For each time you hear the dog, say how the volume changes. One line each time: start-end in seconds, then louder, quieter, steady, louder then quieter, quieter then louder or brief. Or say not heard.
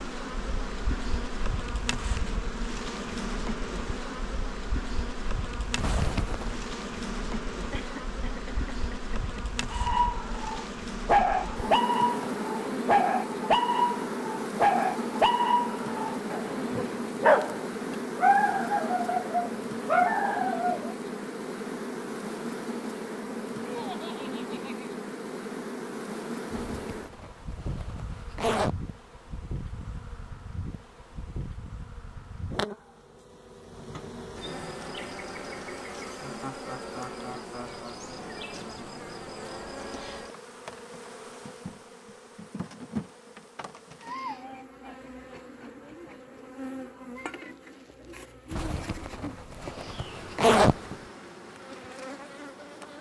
9.7-20.9 steady.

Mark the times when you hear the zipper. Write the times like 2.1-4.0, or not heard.
5.8-6.6, 26.5-28.8, 48.5-51.0.